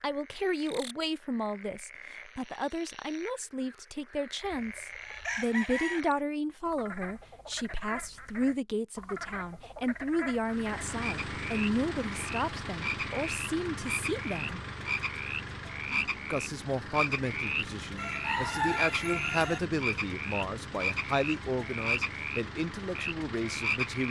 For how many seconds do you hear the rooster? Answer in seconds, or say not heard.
3 s.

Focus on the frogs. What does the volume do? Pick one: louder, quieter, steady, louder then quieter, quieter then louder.
louder.